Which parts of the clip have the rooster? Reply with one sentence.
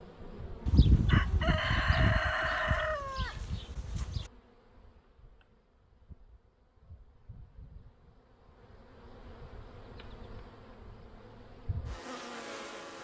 You can hear the rooster from 0.7 to 4.2 s.